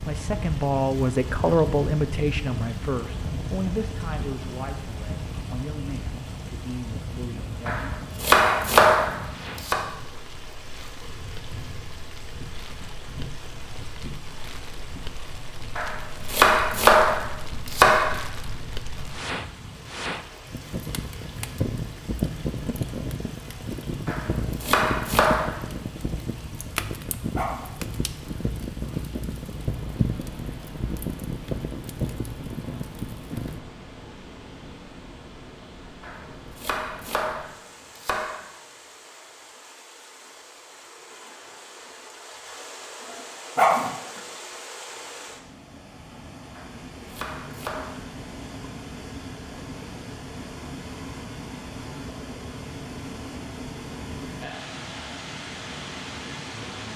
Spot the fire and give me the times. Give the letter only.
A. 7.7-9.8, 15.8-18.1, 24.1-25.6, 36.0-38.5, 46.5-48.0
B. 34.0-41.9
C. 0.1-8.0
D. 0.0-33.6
D.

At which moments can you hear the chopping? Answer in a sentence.
The chopping can be heard from 7.7 to 9.8 s, from 15.8 to 18.1 s, from 24.1 to 25.6 s, from 36.0 to 38.5 s and from 46.5 to 48.0 s.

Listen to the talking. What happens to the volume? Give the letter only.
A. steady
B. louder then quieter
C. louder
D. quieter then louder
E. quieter
E.